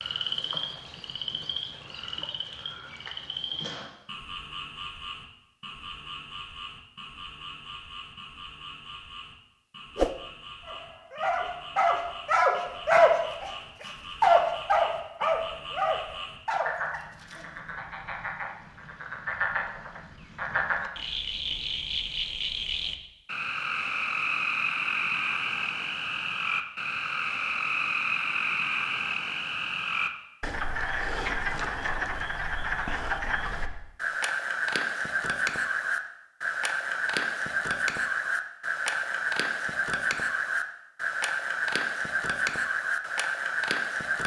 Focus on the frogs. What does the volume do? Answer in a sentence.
The loudness of the frogs goes up.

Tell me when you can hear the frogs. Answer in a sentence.
You can hear the frogs from 0.0 to 44.2 s.